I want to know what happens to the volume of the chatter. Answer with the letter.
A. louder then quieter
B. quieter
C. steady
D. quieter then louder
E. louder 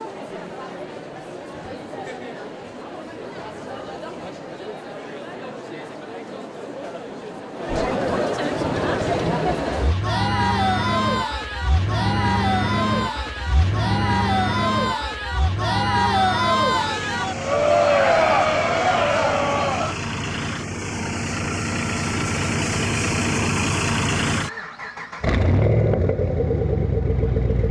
E.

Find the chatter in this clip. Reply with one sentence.
The chatter can be heard from 0.0 to 19.9 s.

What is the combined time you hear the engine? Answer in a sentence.
The engine can be heard for 19 seconds in total.